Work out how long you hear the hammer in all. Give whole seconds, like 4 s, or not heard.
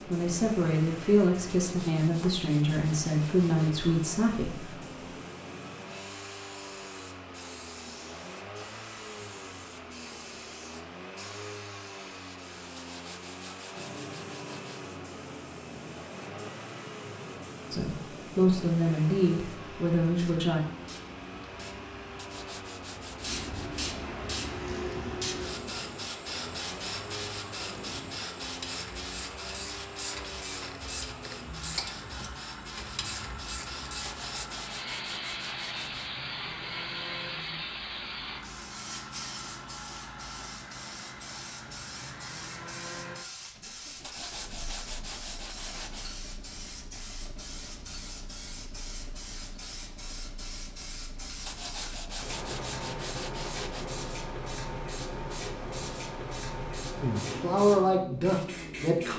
not heard.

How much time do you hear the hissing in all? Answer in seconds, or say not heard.
59 s.